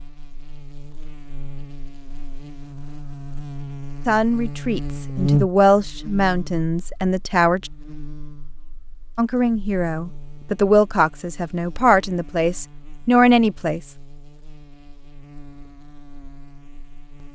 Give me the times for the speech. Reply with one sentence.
You can hear the speech from 4.0 to 7.7 s and from 9.2 to 13.9 s.